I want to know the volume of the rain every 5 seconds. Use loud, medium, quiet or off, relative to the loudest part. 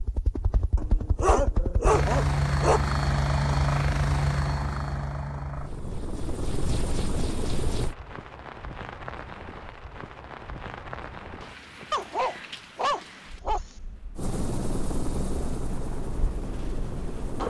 off, loud, loud, loud.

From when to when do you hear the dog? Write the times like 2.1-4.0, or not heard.
0.8-2.8, 11.9-13.6.